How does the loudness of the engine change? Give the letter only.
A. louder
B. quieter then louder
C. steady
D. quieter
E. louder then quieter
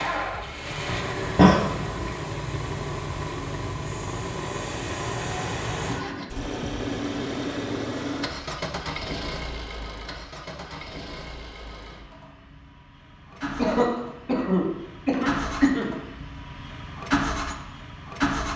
B.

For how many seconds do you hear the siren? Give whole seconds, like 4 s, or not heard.
not heard.